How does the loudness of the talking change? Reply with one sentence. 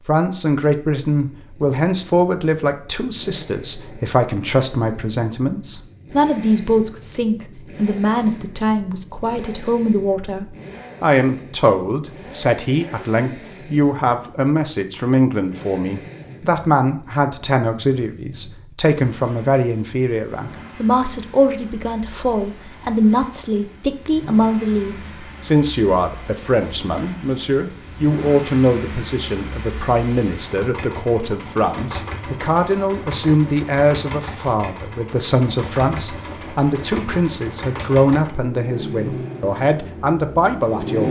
The volume of the talking stays about the same.